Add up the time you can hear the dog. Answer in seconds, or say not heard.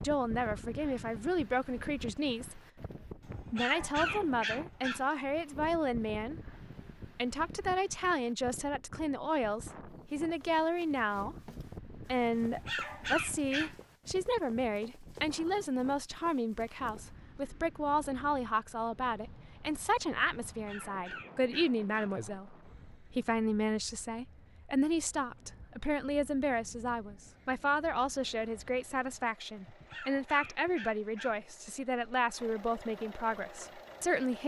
7 s.